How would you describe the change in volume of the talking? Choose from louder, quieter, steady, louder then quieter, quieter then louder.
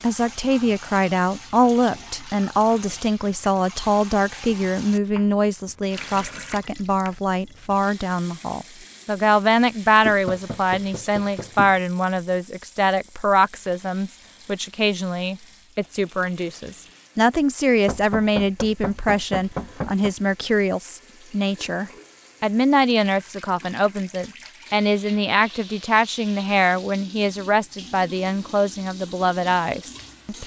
steady.